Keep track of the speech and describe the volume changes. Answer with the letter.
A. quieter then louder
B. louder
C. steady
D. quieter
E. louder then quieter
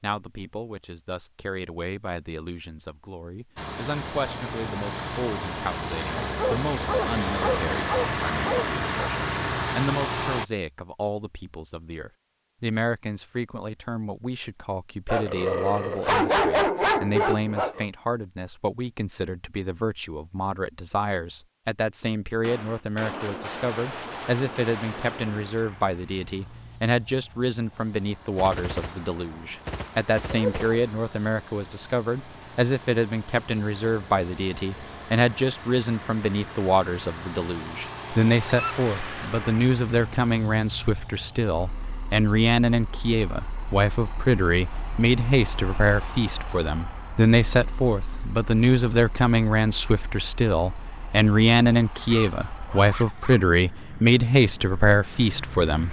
B.